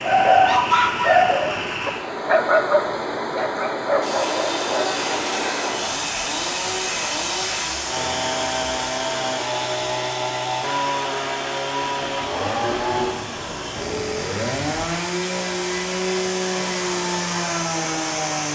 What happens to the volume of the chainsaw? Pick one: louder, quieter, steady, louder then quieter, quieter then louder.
steady.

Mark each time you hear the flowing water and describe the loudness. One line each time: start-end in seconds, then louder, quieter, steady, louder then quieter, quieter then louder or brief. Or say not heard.
0.0-18.5 quieter then louder.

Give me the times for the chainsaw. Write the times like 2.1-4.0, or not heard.
4.0-18.5.